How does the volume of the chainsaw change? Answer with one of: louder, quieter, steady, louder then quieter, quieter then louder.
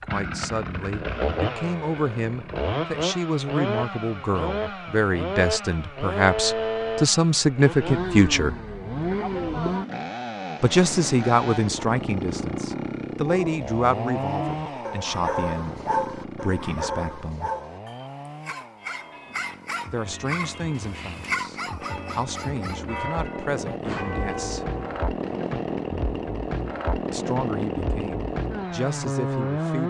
quieter then louder.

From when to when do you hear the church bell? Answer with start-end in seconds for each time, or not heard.
18.8-25.1.